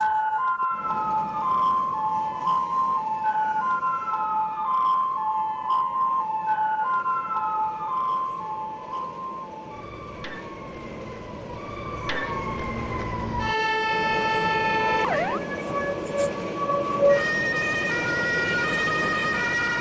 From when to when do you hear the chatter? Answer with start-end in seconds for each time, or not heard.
not heard.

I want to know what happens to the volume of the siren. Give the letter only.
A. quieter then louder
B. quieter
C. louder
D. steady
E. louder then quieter
A.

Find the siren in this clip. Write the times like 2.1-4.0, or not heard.
0.0-19.7.